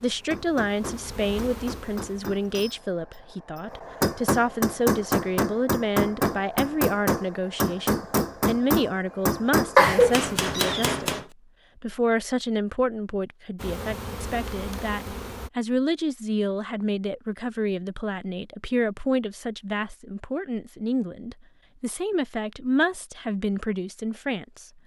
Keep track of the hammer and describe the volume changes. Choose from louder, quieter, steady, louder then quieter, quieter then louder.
louder.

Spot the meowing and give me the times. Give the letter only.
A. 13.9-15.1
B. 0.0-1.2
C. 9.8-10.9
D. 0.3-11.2
C.